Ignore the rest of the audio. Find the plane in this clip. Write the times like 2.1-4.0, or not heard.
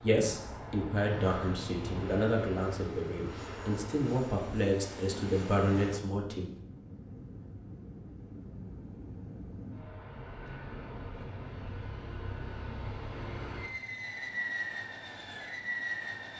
0.0-16.3.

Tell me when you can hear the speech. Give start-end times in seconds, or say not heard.
0.0-6.5.